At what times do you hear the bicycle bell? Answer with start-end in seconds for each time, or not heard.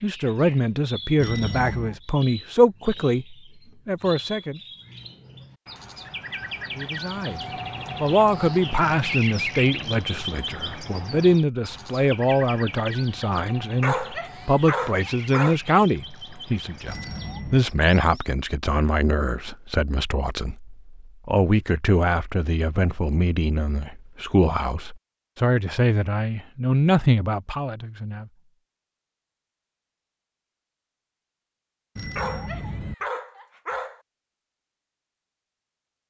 1.1-2.0, 16.9-17.6, 31.9-33.0.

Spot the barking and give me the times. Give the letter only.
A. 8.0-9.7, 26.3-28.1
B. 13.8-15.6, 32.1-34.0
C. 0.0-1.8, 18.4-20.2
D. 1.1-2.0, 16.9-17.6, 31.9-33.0
B.